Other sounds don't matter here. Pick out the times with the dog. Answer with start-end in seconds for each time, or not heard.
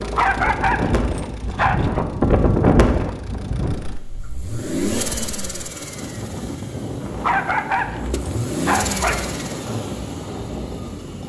0.1-2.0, 7.2-9.4.